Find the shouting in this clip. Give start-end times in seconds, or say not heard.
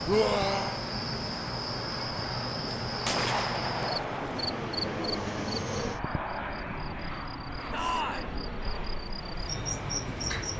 0.1-0.8, 7.7-8.3.